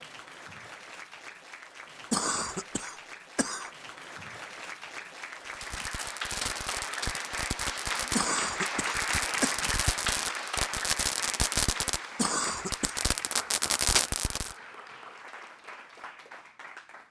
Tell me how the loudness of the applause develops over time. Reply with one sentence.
The volume of the applause goes up, then down.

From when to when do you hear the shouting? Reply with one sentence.
You can't hear the shouting here.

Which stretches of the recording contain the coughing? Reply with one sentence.
You can hear the coughing from 2.1 to 3.7 s, from 8.2 to 9.6 s and from 12.2 to 12.9 s.